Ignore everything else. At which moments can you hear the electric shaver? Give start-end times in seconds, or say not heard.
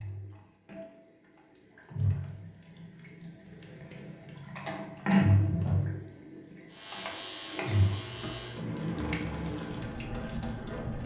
6.7-8.7.